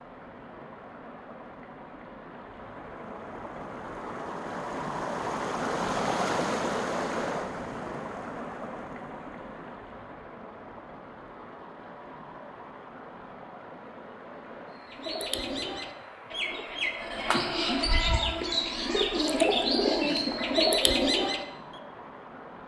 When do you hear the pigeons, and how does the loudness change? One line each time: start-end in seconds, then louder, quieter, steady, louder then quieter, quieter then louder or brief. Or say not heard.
14.8-21.4 louder.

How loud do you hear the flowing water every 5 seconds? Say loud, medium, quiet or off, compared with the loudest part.
medium, loud, quiet, quiet, quiet.